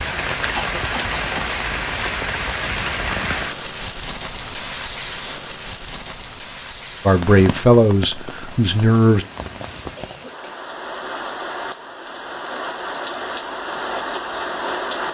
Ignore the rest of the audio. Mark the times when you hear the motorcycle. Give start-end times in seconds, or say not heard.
not heard.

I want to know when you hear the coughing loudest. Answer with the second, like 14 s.
1 s.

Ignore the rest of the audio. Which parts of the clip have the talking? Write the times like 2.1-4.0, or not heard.
7.0-9.2.